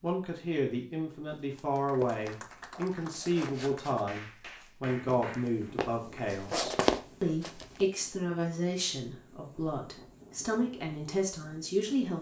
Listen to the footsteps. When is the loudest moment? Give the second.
7 s.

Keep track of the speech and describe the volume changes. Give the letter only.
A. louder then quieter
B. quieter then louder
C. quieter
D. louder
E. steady
E.